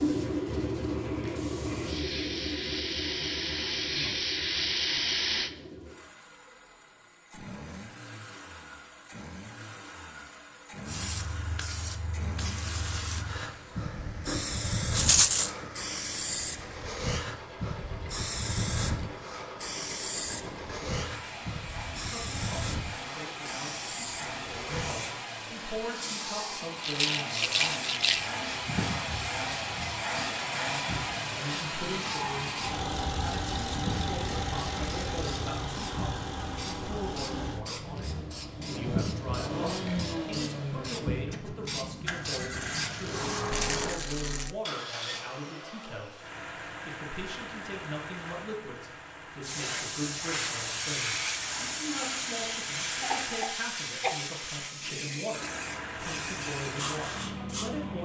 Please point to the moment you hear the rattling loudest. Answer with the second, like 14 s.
15 s.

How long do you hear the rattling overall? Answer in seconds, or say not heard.
3 s.